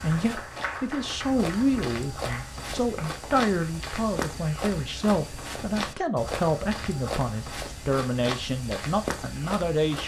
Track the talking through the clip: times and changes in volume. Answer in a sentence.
You can hear the talking from 0.0 to 10.0 s, at a steady volume.